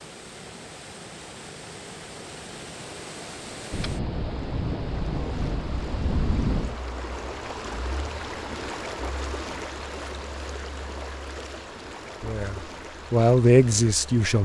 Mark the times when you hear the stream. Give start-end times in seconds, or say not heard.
0.0-14.4.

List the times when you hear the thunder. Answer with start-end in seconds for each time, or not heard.
3.7-6.8.